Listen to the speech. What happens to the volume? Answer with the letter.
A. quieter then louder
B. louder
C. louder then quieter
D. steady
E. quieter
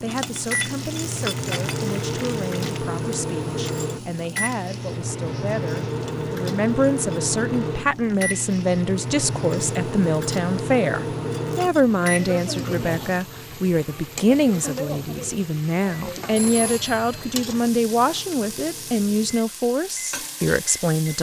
B.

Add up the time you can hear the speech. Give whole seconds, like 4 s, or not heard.
21 s.